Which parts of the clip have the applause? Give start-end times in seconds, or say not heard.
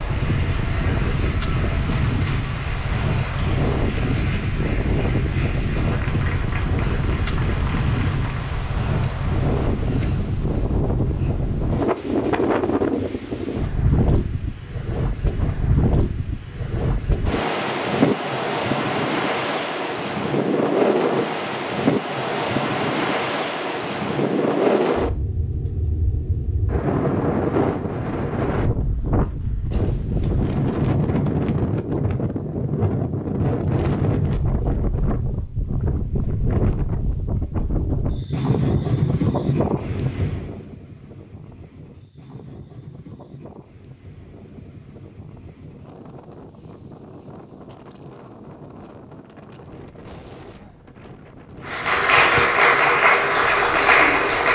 0.0-8.6, 51.6-54.5.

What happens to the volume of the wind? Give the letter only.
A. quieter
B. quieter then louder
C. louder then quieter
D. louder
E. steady
A.